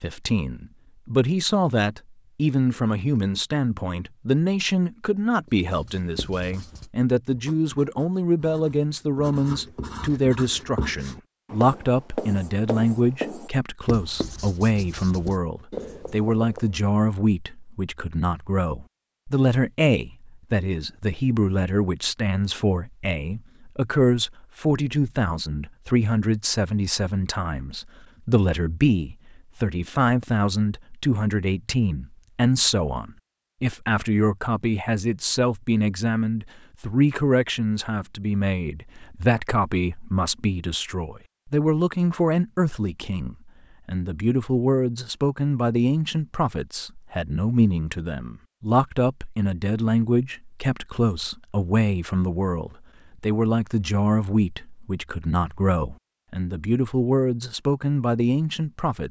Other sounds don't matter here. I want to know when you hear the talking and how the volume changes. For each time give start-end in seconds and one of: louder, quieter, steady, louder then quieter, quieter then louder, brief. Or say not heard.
0.0-59.0 steady.